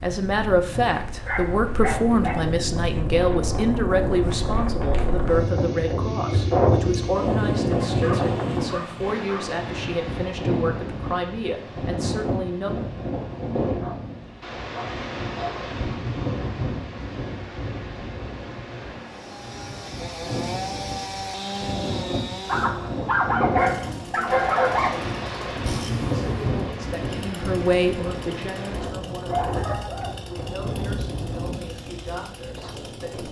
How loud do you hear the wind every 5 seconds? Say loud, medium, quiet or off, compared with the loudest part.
medium, loud, medium, medium, medium, medium, medium.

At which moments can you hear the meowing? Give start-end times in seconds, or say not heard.
not heard.